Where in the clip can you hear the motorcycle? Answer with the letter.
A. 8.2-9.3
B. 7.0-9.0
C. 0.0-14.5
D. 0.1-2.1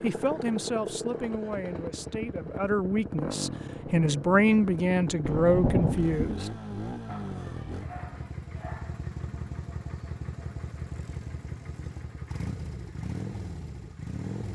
C.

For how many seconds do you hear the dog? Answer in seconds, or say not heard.
2 s.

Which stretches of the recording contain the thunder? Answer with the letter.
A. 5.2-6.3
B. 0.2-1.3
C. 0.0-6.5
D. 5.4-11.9
A.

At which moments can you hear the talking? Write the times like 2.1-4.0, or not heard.
0.0-6.5.